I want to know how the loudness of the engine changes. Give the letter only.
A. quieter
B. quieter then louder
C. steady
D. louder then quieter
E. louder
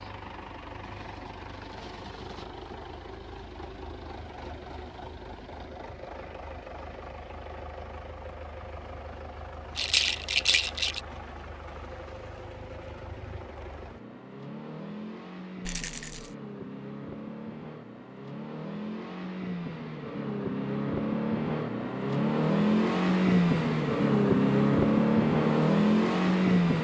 E.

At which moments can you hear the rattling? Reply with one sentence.
You can hear the rattling from 9.8 to 11.0 s and from 15.7 to 16.4 s.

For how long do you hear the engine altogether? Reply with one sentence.
You can hear the engine for 27 seconds altogether.